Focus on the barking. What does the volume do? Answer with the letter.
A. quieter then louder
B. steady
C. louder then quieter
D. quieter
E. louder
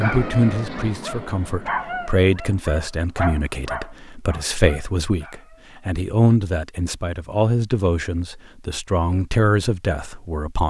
C.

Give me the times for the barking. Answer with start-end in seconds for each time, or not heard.
0.0-5.7.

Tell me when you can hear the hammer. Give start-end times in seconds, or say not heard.
not heard.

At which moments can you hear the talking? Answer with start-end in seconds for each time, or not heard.
0.0-10.6.